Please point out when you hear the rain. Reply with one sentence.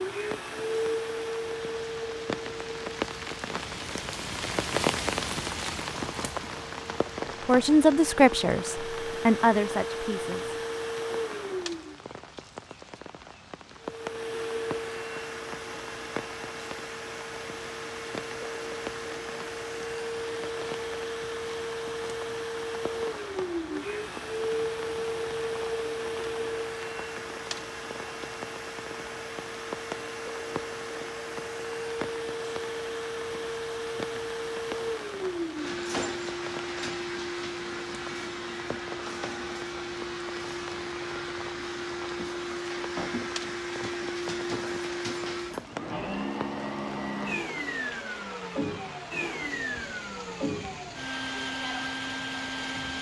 The rain can be heard from 0.1 to 52.9 s.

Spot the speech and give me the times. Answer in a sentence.
The speech can be heard from 7.5 to 10.6 s.